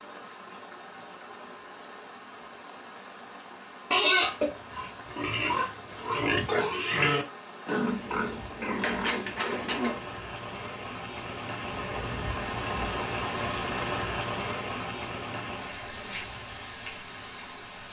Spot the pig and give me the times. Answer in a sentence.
You can hear the pig from 3.9 to 10.0 s.